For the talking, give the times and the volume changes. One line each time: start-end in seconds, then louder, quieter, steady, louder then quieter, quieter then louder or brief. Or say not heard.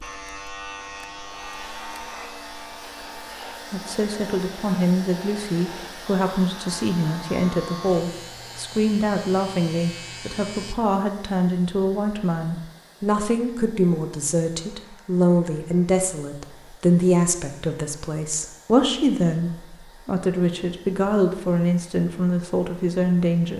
3.7-23.5 steady.